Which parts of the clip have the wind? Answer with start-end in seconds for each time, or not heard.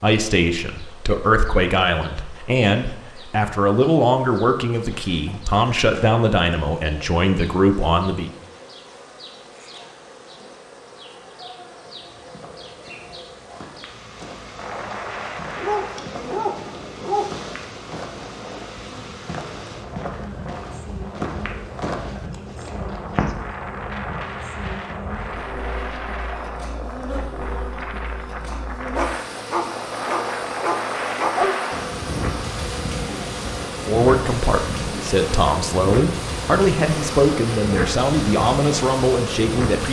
14.6-39.8.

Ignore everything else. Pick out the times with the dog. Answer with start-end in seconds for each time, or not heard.
15.5-17.3, 28.9-31.6.